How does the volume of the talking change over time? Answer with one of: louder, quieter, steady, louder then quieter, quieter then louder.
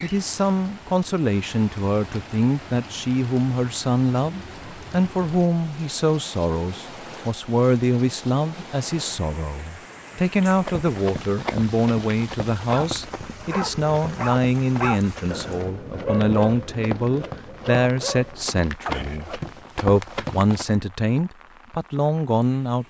steady.